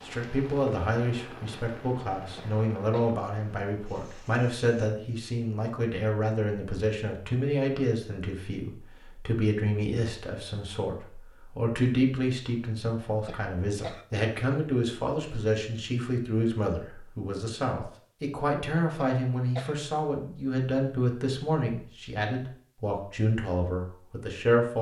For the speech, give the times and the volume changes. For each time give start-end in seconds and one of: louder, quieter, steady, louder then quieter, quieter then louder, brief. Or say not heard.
0.1-24.7 steady.